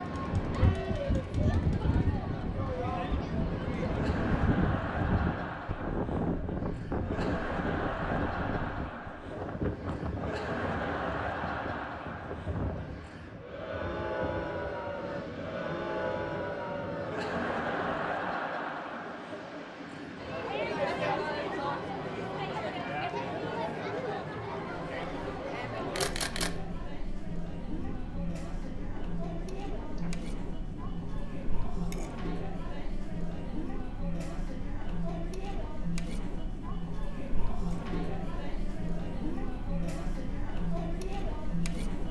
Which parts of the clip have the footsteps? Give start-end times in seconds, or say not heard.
not heard.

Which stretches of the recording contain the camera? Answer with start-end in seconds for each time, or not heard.
25.9-26.6.